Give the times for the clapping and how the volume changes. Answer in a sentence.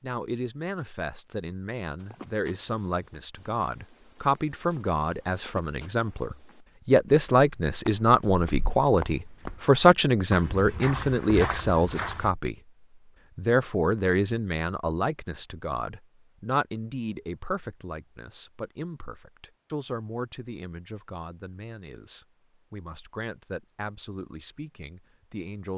The clapping can't be heard in this clip.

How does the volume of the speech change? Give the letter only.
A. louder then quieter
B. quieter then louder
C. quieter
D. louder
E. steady
A.